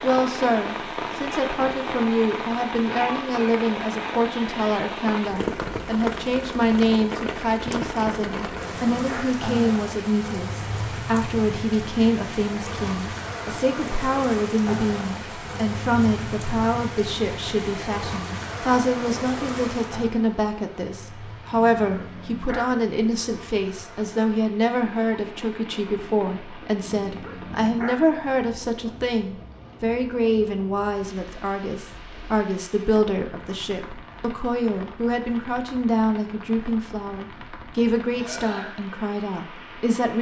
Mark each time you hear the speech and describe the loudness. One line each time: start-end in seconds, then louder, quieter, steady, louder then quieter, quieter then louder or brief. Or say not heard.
0.0-40.1 steady.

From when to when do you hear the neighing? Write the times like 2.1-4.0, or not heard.
38.1-38.8.